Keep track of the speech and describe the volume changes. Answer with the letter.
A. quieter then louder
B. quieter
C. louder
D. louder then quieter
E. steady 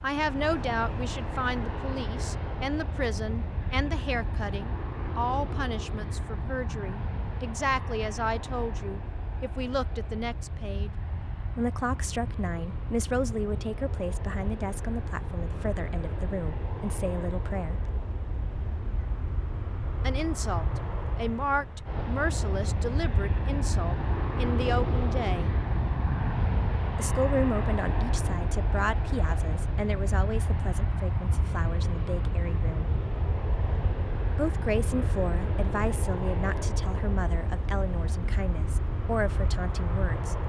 E.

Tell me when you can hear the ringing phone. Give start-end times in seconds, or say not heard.
not heard.